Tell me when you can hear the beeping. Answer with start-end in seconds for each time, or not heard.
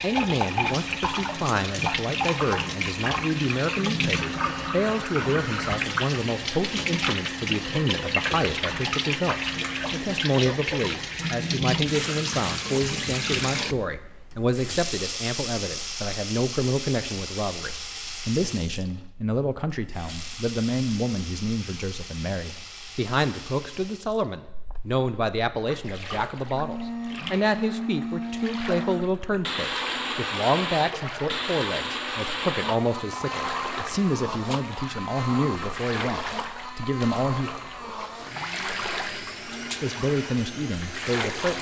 not heard.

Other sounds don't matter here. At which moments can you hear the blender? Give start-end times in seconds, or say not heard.
0.7-10.2, 26.5-41.5.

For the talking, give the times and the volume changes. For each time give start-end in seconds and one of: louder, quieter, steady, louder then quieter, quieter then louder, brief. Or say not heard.
0.0-37.5 steady
39.8-41.5 brief.